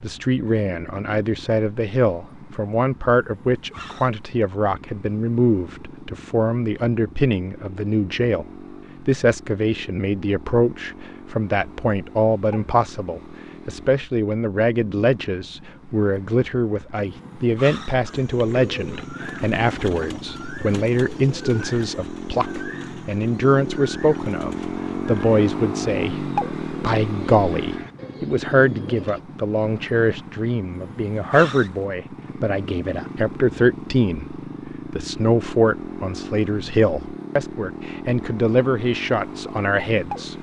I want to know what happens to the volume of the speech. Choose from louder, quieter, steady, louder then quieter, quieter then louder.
steady.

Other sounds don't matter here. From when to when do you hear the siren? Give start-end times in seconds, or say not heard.
not heard.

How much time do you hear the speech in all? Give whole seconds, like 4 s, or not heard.
40 s.